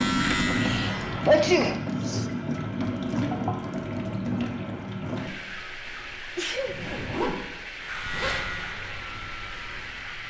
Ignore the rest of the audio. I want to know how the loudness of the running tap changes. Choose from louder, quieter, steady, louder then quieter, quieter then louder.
quieter.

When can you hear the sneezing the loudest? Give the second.
1 s.